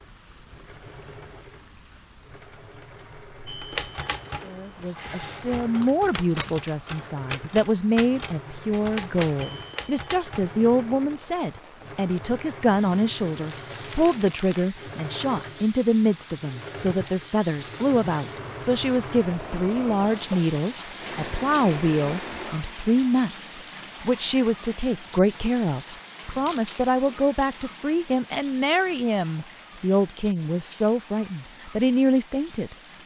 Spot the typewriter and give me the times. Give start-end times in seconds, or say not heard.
3.5-10.5.